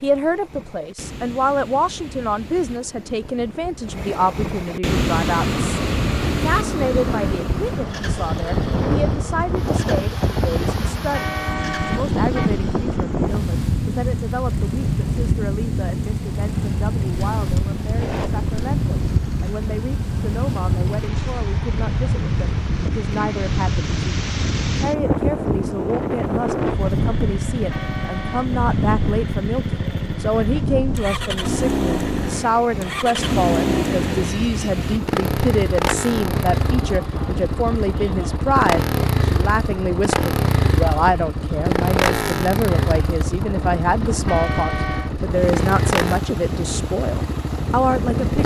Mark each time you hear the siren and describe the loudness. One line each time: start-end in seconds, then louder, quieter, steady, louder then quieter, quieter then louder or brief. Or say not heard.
not heard.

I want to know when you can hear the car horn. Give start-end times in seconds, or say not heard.
10.8-12.5, 27.6-28.5, 44.1-45.1.